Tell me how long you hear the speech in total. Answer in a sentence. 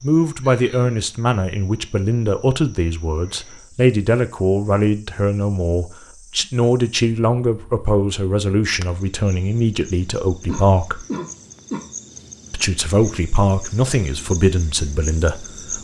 The speech can be heard for 14 seconds in total.